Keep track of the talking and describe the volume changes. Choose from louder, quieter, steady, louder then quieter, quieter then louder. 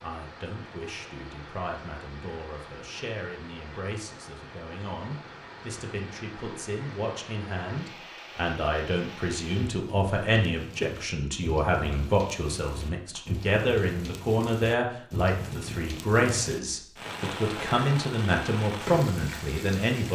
louder.